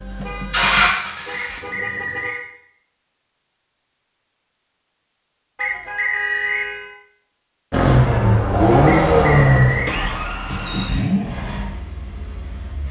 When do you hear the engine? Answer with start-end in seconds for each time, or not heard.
0.0-2.3, 7.7-12.8.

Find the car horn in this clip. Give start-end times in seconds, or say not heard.
0.2-2.5, 5.5-7.0, 10.5-11.1.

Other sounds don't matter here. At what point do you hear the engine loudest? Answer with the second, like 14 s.
9 s.